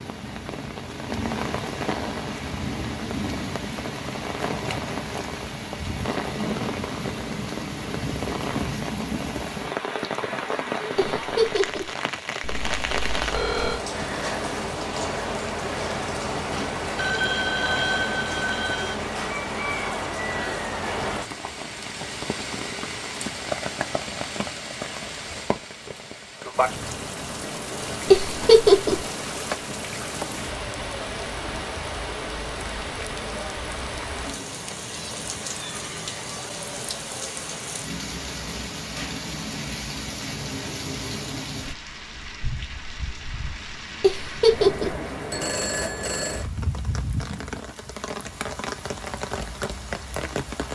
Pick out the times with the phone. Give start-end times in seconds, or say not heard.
12.4-13.8, 16.9-18.9, 45.3-46.5.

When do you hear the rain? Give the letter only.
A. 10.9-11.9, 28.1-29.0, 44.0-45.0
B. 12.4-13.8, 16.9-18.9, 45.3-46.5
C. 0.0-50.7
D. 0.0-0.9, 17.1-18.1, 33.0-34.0
C.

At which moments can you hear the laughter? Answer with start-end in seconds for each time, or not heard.
10.9-11.9, 28.1-29.0, 44.0-45.0.